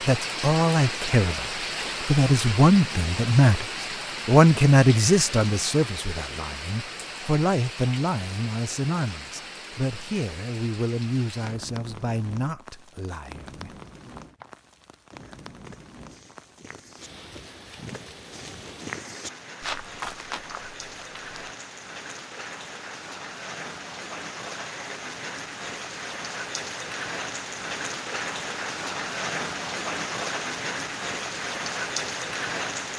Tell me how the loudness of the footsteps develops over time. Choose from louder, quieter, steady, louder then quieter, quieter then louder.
louder.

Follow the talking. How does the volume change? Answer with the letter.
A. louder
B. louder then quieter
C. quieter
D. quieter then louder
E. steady
C.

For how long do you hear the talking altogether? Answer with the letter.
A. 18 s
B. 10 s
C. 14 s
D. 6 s
C.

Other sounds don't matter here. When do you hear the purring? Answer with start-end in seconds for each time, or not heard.
not heard.